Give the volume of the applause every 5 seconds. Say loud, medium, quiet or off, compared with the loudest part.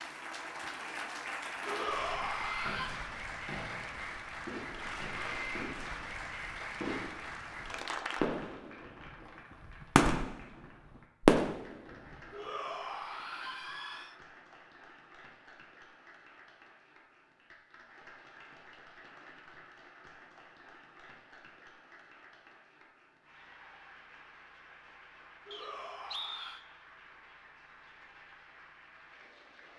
loud, loud, quiet, quiet, quiet, quiet.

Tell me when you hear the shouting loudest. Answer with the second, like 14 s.
2 s.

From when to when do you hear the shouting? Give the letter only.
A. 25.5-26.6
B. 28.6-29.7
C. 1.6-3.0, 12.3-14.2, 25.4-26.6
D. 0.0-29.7
C.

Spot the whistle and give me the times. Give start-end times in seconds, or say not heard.
25.5-26.6.